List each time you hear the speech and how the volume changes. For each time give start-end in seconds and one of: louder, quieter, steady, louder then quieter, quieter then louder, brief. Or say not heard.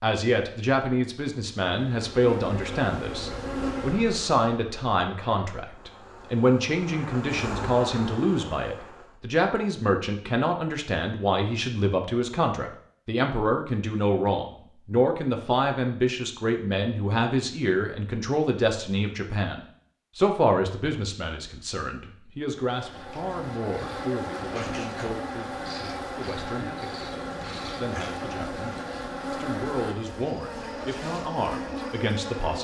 0.0-32.6 quieter.